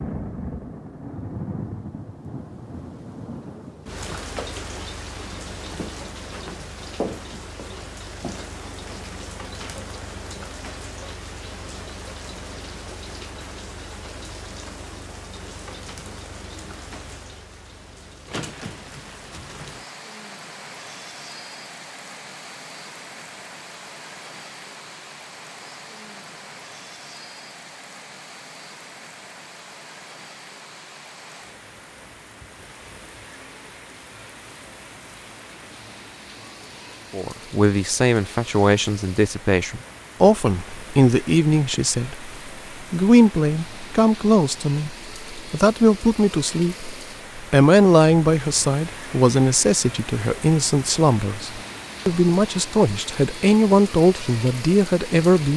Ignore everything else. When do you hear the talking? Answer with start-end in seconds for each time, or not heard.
37.1-42.3, 42.9-55.5.